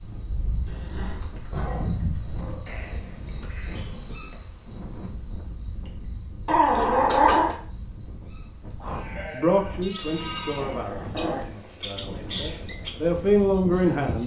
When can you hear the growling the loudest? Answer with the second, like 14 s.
7 s.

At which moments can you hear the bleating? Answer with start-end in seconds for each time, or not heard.
2.6-4.5, 8.8-10.8.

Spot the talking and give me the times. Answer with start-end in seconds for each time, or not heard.
9.2-14.2.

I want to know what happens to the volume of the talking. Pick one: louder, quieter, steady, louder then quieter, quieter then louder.
quieter then louder.